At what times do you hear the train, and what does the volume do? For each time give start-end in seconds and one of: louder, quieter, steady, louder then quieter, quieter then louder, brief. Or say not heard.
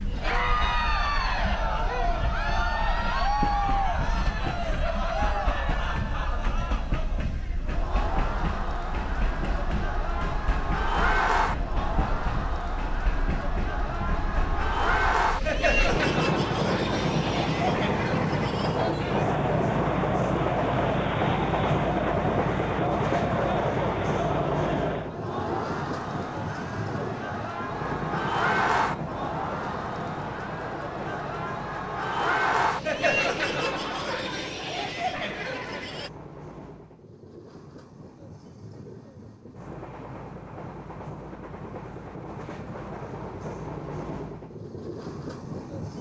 0.0-45.9 louder then quieter.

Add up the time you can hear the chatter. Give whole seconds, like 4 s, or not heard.
36 s.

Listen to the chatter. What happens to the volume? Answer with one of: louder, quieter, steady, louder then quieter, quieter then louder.
steady.